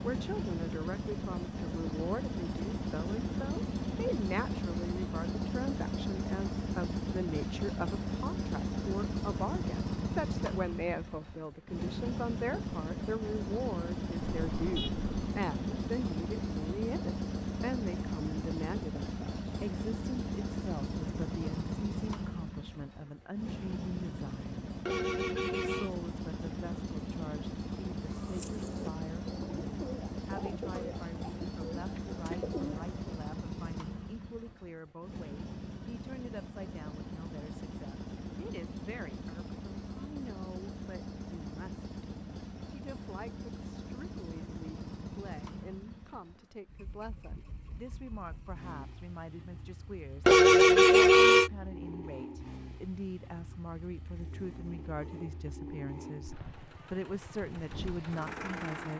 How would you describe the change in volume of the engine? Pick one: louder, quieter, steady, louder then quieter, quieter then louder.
quieter.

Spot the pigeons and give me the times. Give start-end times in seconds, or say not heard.
28.1-33.0.